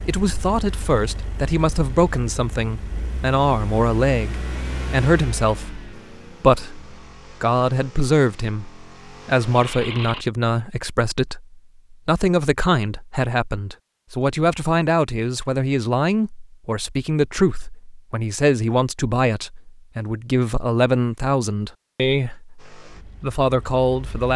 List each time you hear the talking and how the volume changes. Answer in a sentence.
The talking can be heard from 0.1 to 24.3 s, at a steady volume.